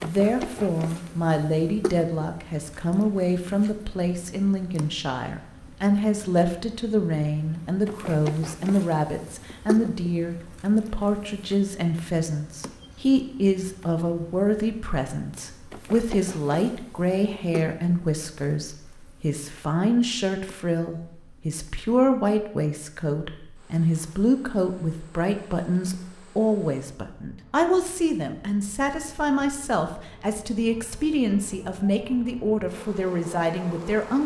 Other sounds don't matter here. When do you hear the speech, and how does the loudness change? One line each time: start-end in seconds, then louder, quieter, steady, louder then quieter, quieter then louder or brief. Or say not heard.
0.0-34.2 steady.